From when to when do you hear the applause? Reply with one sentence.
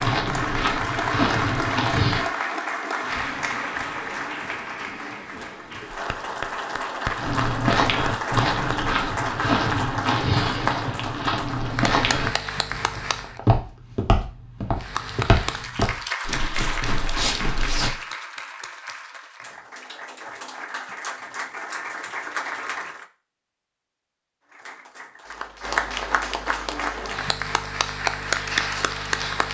You can hear the applause from 0.0 to 13.4 s, from 14.8 to 23.1 s and from 24.4 to 29.4 s.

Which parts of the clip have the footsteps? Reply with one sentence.
The footsteps can be heard from 0.0 to 2.2 s and from 7.2 to 17.9 s.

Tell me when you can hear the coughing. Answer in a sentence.
You can't hear the coughing here.